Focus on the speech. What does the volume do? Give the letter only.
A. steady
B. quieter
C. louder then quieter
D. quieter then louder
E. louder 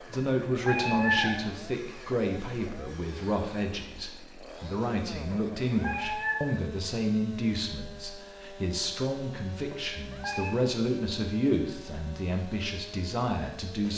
A.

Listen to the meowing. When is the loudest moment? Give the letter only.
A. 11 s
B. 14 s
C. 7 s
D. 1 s
D.